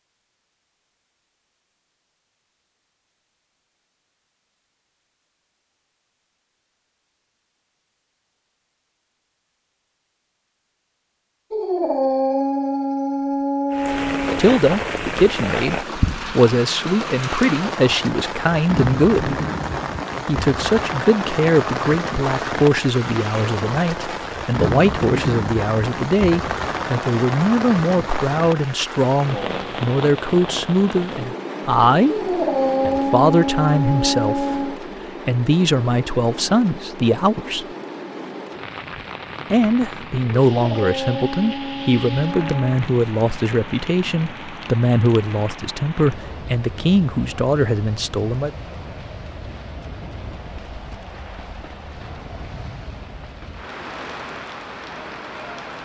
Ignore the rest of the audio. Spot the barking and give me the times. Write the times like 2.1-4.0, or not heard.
11.5-14.4, 32.0-34.8, 40.5-42.9.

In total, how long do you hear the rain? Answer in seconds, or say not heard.
42 s.